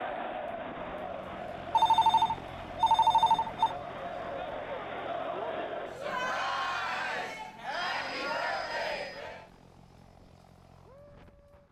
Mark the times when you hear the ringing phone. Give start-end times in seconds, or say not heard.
1.7-3.8, 7.7-9.2.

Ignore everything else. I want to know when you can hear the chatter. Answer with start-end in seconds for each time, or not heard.
0.0-9.5.